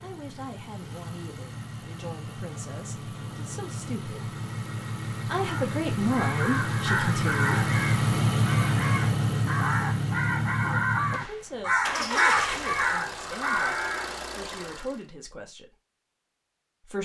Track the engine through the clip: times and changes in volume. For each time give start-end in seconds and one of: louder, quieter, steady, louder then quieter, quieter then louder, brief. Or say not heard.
0.0-15.1 louder then quieter.